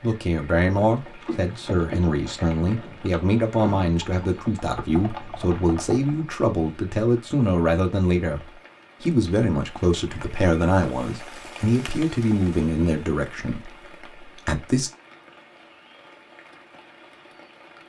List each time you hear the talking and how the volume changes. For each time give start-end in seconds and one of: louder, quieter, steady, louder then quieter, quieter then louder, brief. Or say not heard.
0.0-14.9 steady.